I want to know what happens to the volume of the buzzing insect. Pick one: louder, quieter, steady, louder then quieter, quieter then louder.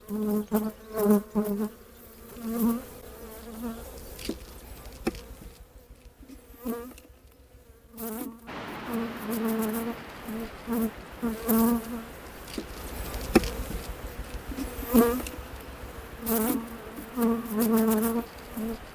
quieter then louder.